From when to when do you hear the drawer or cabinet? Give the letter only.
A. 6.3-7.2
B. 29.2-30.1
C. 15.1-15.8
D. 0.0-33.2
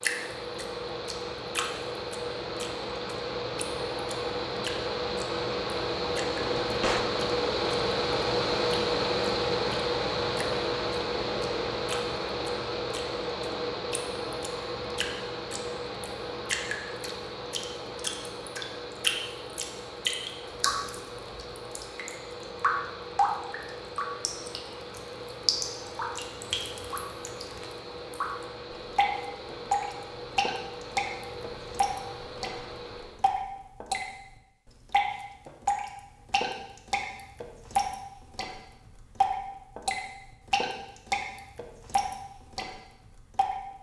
A.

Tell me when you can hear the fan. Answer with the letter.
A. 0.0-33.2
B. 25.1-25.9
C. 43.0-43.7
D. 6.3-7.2
A.